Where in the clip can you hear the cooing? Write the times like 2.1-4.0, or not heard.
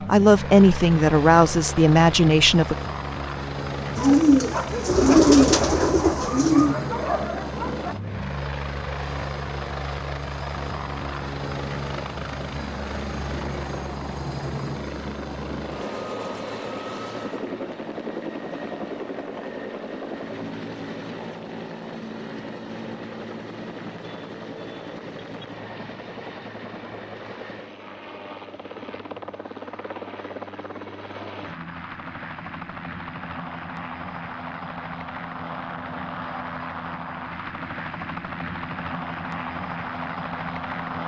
4.0-6.8.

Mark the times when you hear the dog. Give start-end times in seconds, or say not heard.
3.9-8.0.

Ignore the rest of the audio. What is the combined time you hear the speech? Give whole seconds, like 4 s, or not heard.
3 s.